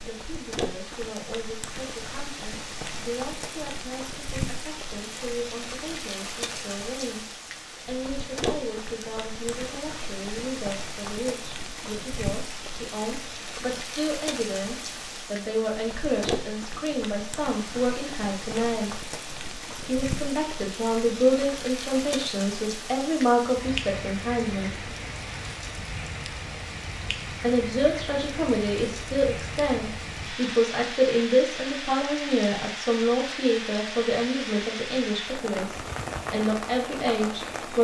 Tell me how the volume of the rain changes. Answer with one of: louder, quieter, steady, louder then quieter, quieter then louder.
steady.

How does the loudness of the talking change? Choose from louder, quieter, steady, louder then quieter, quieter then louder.
louder.